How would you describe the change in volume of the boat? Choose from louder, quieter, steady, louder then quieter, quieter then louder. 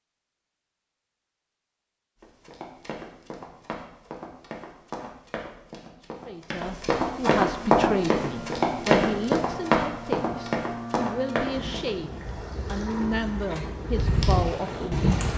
louder.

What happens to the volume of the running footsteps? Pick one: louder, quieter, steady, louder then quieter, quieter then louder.
louder then quieter.